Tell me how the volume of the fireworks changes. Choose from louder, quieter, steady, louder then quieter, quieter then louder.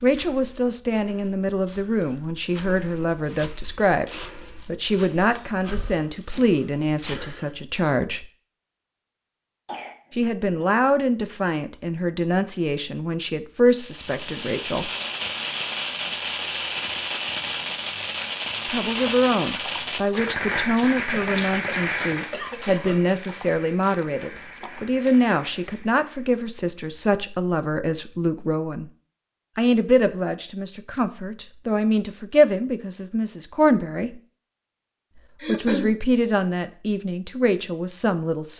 quieter.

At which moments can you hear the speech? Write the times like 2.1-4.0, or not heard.
0.0-8.2, 10.1-14.9, 18.6-28.9, 29.6-34.2, 35.5-38.5.